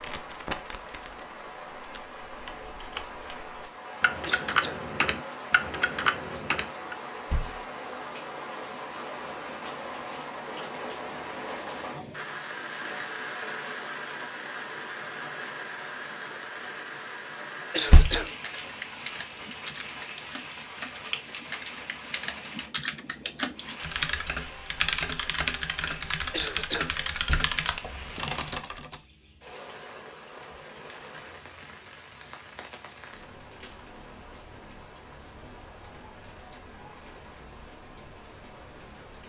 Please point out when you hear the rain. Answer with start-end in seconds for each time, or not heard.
0.0-39.2.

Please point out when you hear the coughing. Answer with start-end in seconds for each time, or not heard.
4.2-4.8, 17.7-18.3, 26.3-26.9.